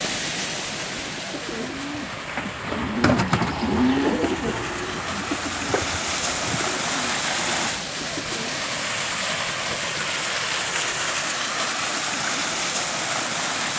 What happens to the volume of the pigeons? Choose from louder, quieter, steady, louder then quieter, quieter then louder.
louder then quieter.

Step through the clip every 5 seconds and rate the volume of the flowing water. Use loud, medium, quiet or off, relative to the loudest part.
medium, loud, loud.